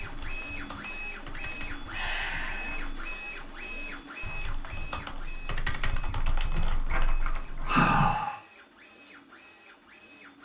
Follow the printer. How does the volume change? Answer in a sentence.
The volume of the printer goes down.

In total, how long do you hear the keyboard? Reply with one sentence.
You can hear the keyboard for 8 seconds altogether.